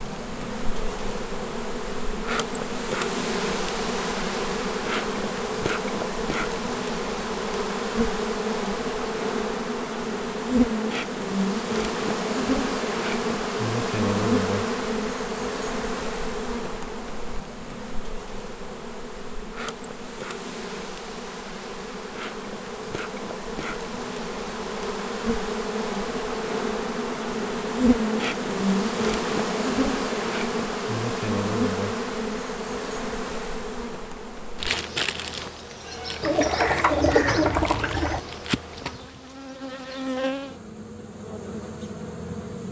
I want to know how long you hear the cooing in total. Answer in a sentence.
You can hear the cooing for 2 seconds altogether.